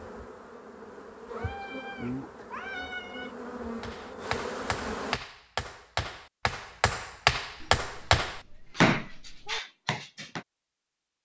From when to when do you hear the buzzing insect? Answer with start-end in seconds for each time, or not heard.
0.0-5.2.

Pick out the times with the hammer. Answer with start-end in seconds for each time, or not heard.
3.8-10.4.